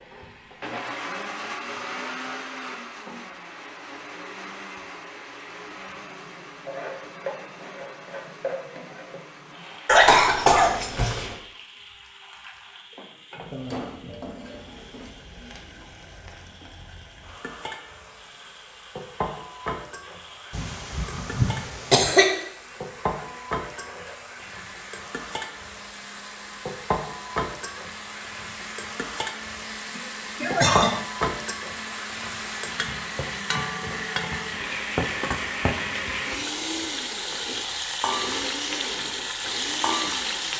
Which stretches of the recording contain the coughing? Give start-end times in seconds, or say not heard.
9.8-11.3, 20.5-22.2, 29.9-30.9.